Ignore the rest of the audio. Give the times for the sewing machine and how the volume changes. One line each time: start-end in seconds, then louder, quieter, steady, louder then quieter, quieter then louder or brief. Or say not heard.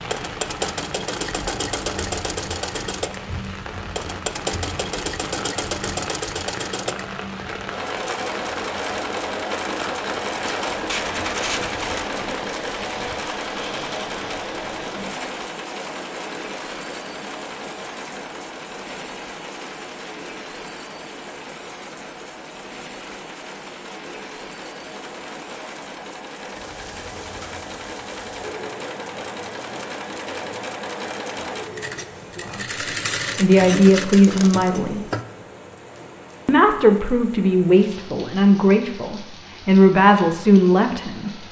0.0-35.2 quieter then louder.